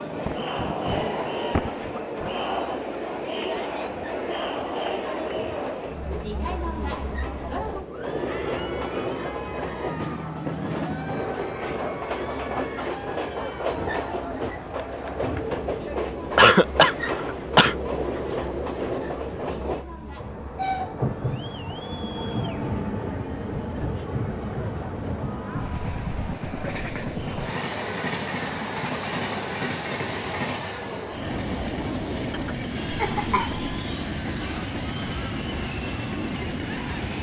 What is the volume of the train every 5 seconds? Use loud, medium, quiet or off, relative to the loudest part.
medium, loud, loud, loud, loud, loud, loud, loud.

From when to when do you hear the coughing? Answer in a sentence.
The coughing can be heard from 0.2 to 2.4 s, from 16.4 to 17.8 s and from 32.3 to 33.6 s.